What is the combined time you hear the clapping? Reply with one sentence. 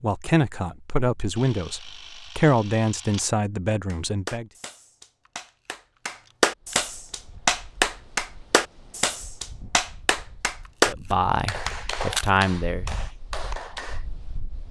You can hear the clapping for 10 seconds altogether.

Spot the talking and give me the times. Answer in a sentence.
You can hear the talking from 0.0 to 4.5 s and from 10.8 to 12.8 s.